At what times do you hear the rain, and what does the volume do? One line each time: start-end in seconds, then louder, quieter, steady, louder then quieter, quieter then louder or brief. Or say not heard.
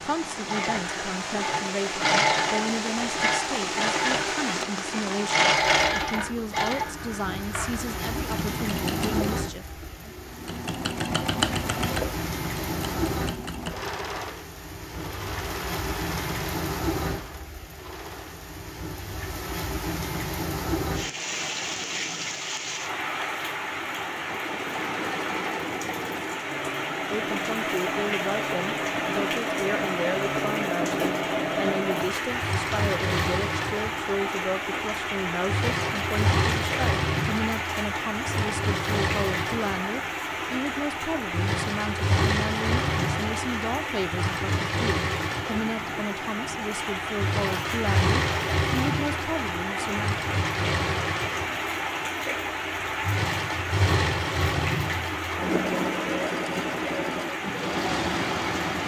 0.0-58.8 steady.